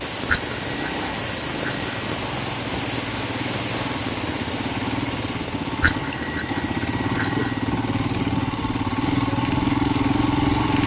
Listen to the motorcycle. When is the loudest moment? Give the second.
10 s.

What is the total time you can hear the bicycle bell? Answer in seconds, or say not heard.
4 s.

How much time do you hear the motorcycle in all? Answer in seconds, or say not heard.
11 s.